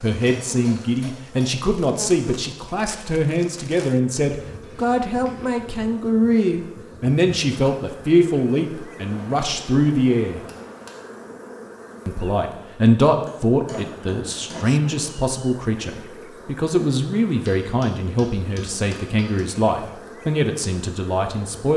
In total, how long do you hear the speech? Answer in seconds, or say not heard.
20 s.